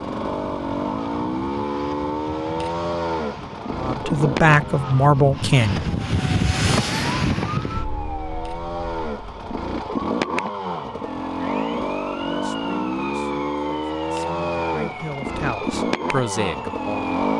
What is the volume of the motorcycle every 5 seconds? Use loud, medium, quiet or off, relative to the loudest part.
loud, medium, loud, loud.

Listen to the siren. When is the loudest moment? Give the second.
7 s.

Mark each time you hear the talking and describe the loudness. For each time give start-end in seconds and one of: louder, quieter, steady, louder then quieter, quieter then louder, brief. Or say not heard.
3.8-5.8 brief
12.2-17.1 quieter then louder.